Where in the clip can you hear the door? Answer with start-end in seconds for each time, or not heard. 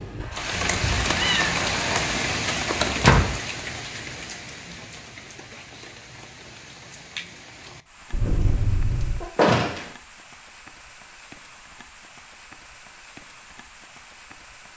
2.8-3.4, 9.3-9.9.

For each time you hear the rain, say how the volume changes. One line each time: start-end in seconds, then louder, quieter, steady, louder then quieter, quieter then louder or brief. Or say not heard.
0.0-14.7 quieter.